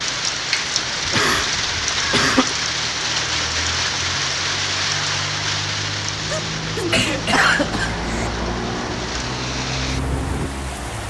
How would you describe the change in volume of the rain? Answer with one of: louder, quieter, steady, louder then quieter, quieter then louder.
quieter.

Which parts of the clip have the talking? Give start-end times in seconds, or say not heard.
not heard.